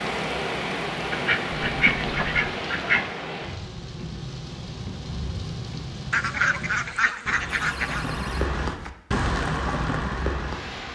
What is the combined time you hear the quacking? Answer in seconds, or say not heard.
4 s.